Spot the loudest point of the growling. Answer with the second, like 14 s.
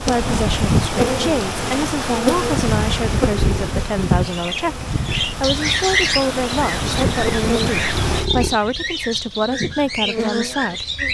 8 s.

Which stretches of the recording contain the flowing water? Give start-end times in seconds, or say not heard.
0.0-8.3.